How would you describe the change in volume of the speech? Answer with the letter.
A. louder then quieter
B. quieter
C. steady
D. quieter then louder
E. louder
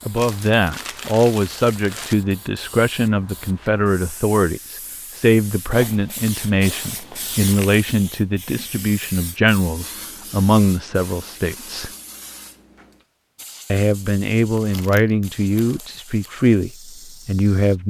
C.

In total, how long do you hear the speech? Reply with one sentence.
You can hear the speech for 16 seconds altogether.